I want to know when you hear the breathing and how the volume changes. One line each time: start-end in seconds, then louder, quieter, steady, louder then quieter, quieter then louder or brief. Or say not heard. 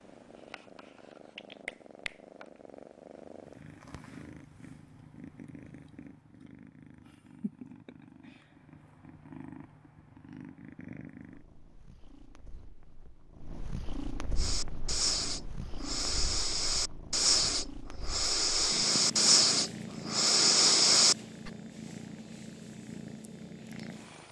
14.3-21.5 louder.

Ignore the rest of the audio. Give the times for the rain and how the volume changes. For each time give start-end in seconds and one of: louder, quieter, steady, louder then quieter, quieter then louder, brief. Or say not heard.
not heard.